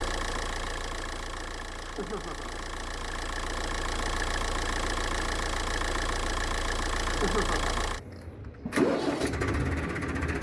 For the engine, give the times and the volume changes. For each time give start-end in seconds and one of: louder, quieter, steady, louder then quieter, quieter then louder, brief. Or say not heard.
0.0-10.3 louder.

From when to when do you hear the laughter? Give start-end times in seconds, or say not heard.
1.8-2.6, 7.0-7.8.